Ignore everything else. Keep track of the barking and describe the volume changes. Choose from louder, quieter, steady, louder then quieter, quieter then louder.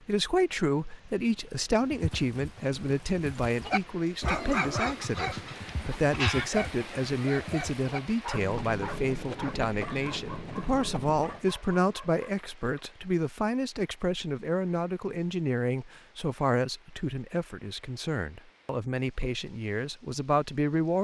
quieter.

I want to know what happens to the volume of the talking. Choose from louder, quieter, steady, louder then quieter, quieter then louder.
steady.